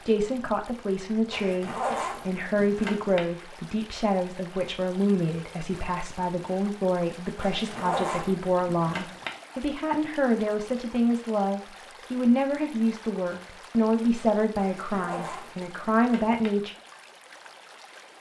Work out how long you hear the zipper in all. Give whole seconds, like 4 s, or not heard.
6 s.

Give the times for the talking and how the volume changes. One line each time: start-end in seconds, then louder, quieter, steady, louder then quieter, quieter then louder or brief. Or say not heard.
0.1-16.8 steady.